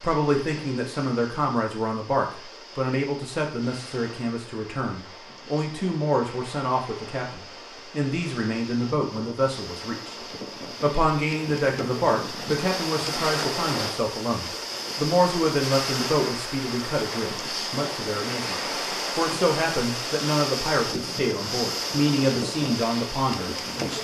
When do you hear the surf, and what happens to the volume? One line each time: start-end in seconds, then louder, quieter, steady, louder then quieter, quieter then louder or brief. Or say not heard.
0.0-23.9 louder.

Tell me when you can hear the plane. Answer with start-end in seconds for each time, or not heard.
not heard.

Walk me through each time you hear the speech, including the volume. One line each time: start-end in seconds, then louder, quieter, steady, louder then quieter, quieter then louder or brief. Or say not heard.
0.0-23.9 steady.